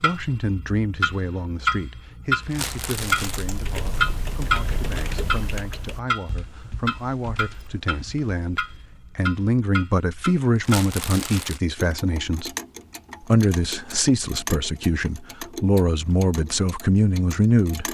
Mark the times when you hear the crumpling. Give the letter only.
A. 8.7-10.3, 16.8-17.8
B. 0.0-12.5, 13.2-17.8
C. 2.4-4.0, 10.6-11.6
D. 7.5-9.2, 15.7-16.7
C.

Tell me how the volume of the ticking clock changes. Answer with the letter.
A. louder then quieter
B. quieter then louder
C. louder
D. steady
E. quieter
E.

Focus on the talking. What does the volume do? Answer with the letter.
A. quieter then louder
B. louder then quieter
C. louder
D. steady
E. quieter
A.